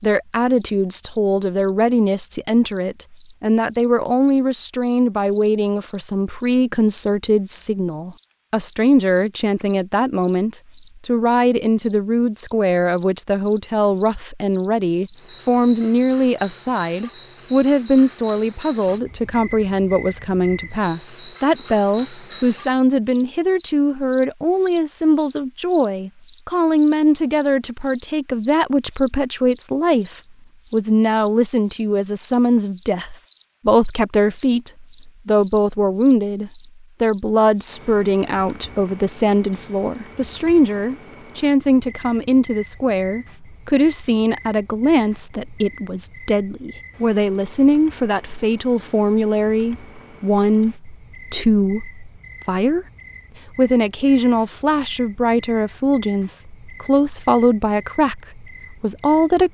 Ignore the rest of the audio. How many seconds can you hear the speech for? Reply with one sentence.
You can hear the speech for 59 seconds altogether.